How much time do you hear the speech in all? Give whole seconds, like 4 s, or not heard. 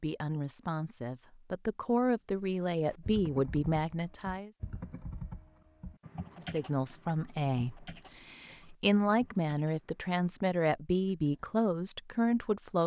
11 s.